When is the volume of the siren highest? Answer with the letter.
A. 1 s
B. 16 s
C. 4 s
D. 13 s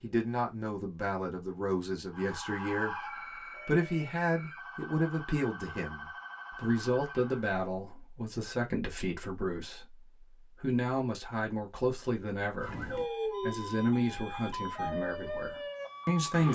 D.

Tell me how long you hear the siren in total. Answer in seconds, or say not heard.
9 s.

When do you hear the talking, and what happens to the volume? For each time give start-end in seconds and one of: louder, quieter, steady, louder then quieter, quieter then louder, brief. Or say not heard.
0.0-3.0 brief
3.6-16.5 steady.